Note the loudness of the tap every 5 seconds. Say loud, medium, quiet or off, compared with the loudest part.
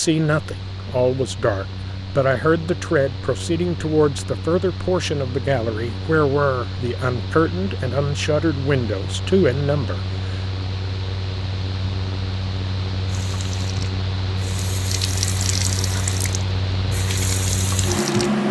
off, off, medium, loud.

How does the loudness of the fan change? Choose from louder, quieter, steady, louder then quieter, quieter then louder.
louder.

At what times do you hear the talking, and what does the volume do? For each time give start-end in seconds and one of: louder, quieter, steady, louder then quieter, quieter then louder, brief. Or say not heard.
0.0-10.3 steady.